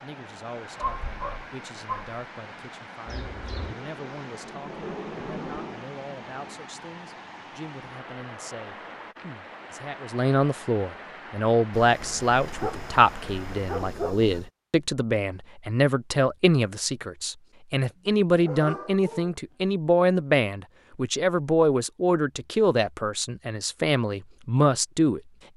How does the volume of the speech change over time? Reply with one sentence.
The volume of the speech goes up.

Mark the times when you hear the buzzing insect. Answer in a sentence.
The buzzing insect can be heard from 3.0 to 6.5 s.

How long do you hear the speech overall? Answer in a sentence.
The speech can be heard for 25 seconds in total.